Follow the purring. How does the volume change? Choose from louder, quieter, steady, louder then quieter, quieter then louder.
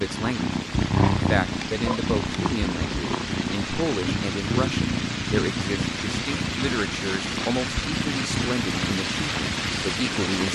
quieter.